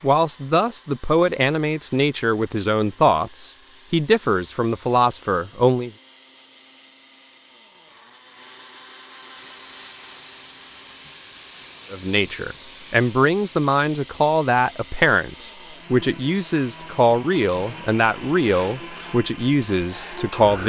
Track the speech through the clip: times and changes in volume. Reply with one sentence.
You can hear the speech from 0.0 to 5.9 s, at a steady volume; and from 11.9 to 20.6 s, at a steady volume.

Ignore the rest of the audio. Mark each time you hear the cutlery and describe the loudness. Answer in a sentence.
The cutlery can't be heard in this clip.